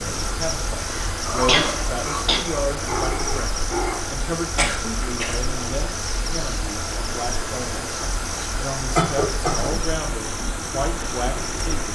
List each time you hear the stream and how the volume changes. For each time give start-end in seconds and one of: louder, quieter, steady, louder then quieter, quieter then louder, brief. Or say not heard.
0.0-11.9 steady.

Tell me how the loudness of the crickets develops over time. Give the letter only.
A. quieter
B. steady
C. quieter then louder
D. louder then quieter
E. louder
B.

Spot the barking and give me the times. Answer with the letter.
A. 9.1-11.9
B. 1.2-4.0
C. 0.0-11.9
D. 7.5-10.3
B.